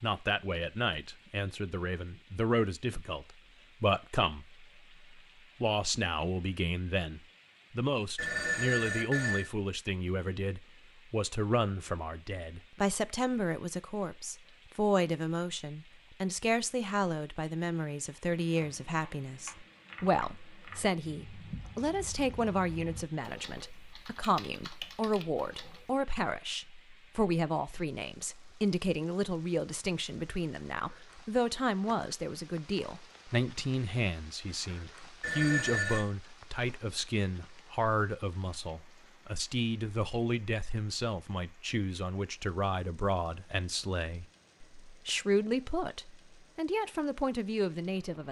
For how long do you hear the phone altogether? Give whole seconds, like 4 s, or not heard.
2 s.